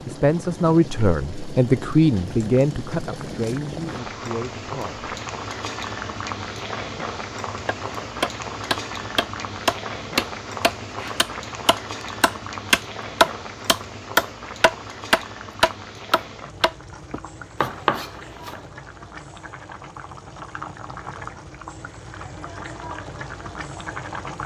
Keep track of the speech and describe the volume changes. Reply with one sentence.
The volume of the speech goes down.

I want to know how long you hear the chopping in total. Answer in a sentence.
The chopping can be heard for 11 seconds in total.